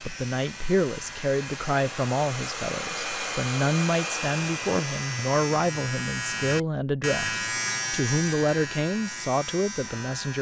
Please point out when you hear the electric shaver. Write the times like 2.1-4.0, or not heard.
0.0-10.3.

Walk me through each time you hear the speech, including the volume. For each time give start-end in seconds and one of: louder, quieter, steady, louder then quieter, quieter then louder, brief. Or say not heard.
0.0-10.3 steady.